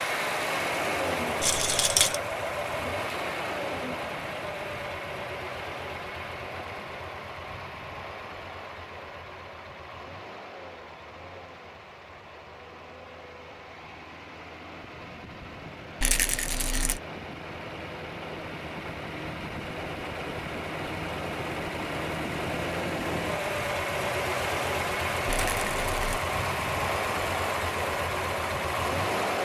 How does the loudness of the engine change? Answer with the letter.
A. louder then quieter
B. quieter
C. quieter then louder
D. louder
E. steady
C.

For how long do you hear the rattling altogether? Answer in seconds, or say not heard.
3 s.